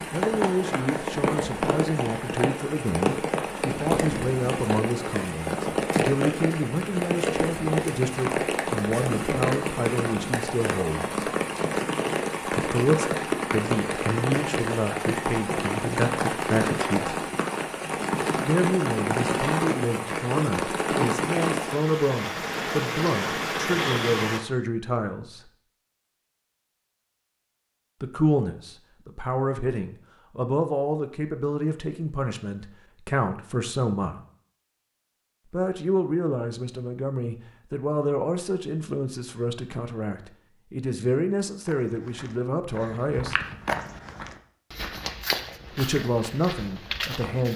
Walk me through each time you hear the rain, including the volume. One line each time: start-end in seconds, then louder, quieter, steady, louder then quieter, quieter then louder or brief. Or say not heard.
0.0-24.4 steady.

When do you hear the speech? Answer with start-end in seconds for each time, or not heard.
0.1-11.2, 12.5-17.2, 18.4-25.4, 28.0-34.2, 35.5-43.5, 45.7-47.5.